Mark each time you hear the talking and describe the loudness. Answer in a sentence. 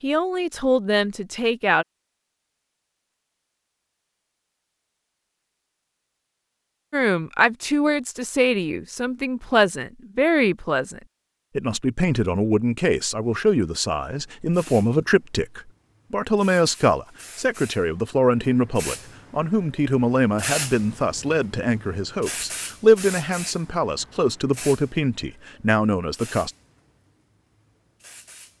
You can hear the talking briefly from 0.0 to 1.9 s; and from 6.9 to 26.5 s, at a steady volume.